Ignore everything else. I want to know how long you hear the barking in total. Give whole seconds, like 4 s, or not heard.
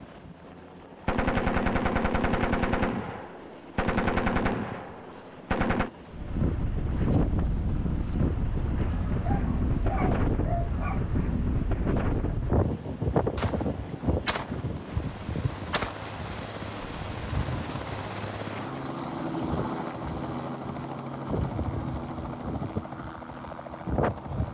2 s.